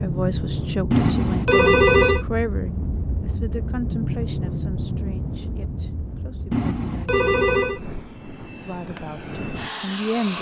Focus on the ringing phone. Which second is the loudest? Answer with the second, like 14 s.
2 s.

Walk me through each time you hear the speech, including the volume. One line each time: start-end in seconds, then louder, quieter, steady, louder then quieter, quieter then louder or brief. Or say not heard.
0.0-7.2 quieter
8.6-10.3 brief.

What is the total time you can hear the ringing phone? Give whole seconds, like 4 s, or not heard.
3 s.